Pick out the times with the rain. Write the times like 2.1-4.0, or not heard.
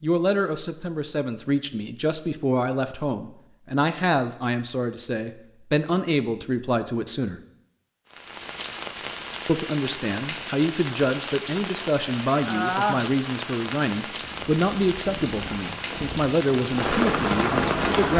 8.1-18.1.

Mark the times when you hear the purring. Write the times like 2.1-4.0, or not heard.
14.2-18.1.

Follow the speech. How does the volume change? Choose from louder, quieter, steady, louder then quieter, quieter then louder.
steady.